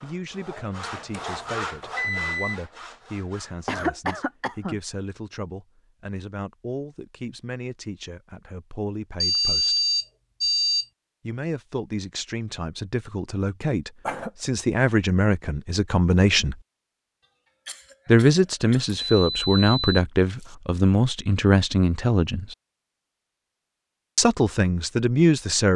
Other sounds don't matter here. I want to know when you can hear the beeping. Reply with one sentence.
The beeping can be heard from 0.9 to 2.6 s, from 9.2 to 10.8 s and from 19.1 to 20.6 s.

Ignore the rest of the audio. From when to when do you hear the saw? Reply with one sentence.
The saw can be heard from 0.0 to 3.7 s.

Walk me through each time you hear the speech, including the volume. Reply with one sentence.
The speech can be heard from 0.0 to 9.8 s, at a steady volume; from 11.2 to 16.6 s, getting louder; from 18.1 to 22.6 s, at a steady volume; and briefly from 24.1 to 25.7 s.